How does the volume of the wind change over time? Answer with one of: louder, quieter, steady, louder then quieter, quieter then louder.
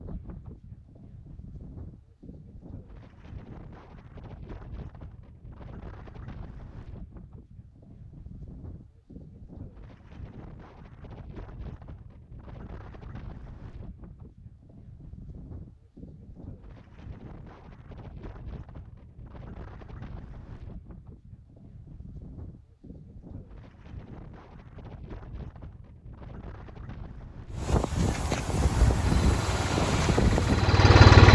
louder.